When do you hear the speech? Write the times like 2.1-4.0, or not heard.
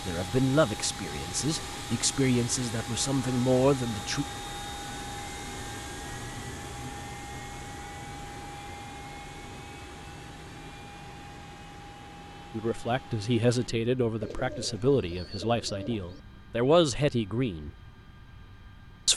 0.1-4.2, 12.5-17.7.